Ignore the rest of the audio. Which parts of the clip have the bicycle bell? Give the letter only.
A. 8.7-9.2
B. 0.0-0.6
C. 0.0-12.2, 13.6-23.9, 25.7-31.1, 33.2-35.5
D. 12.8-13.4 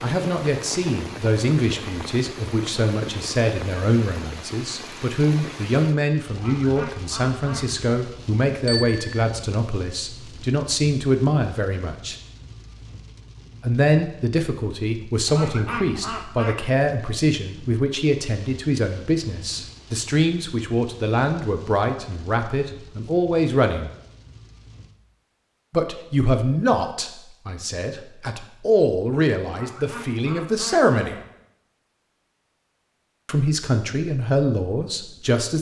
A.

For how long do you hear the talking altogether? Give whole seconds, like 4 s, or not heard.
30 s.